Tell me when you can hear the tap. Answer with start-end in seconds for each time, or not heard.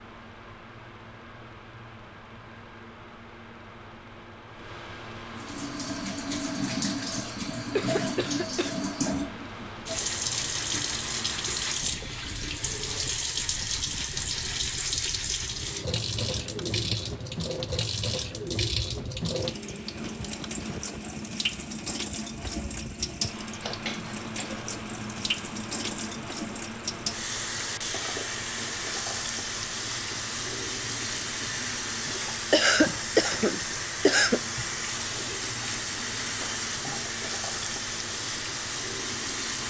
5.3-39.6.